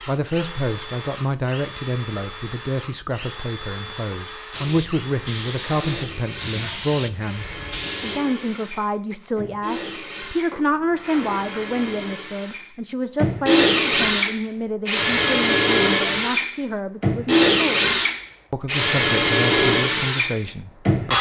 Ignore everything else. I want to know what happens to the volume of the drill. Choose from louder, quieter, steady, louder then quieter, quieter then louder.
louder.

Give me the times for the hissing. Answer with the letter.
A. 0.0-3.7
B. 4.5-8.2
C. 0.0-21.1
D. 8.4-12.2
B.